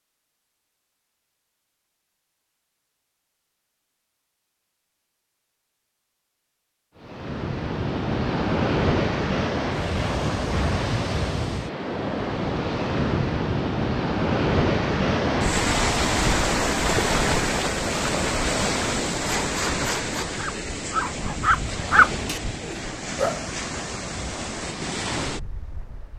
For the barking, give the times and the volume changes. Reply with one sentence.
You can hear the barking from 19.2 to 23.5 s, getting louder then quieter.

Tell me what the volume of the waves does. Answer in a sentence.
The volume of the waves goes down.